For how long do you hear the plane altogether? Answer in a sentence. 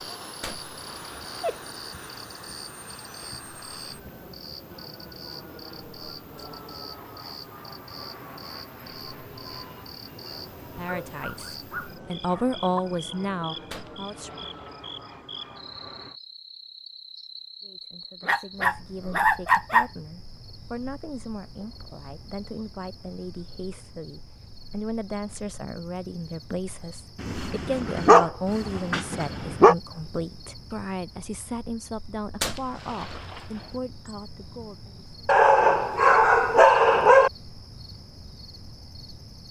You can hear the plane for 16 seconds altogether.